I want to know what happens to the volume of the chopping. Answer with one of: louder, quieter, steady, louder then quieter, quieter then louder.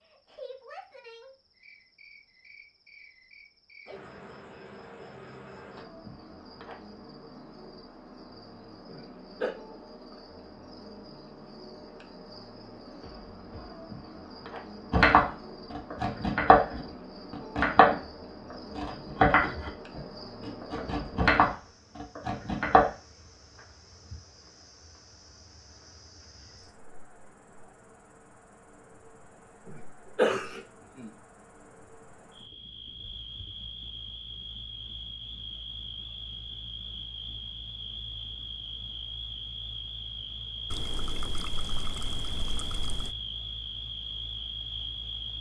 quieter then louder.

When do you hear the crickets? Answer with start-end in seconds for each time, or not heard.
0.0-45.3.